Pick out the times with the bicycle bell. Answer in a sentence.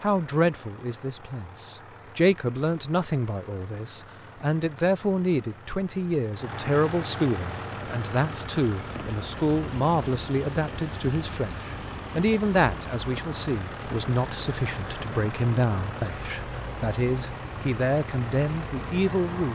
You can't hear the bicycle bell here.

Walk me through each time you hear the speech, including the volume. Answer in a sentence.
The speech can be heard from 0.0 to 19.5 s, at a steady volume.